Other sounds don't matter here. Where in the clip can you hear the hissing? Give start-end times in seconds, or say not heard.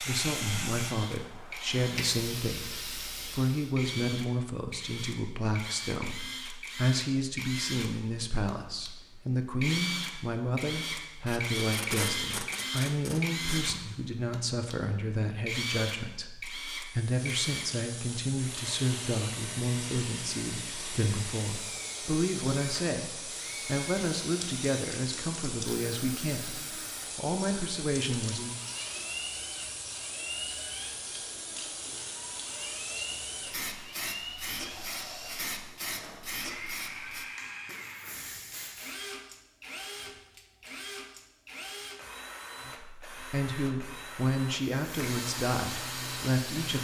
0.0-3.8, 16.9-39.0, 44.8-46.8.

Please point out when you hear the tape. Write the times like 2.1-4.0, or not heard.
11.2-13.8.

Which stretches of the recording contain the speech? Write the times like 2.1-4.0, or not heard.
0.0-28.6, 42.6-46.8.